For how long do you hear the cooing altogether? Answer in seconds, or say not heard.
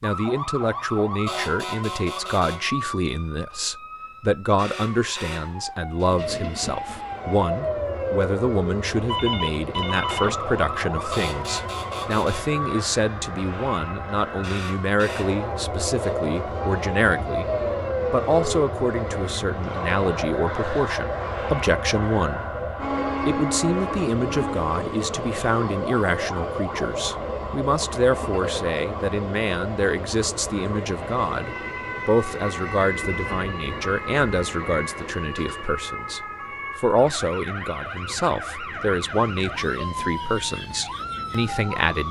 not heard.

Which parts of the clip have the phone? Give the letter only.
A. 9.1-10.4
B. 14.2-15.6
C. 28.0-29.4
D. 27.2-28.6
A.